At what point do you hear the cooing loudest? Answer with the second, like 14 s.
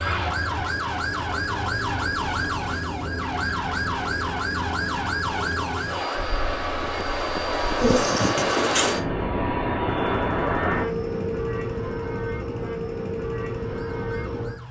8 s.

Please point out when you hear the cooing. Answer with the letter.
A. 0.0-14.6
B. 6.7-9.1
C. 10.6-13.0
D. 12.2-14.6
B.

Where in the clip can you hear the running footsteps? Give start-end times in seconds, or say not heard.
not heard.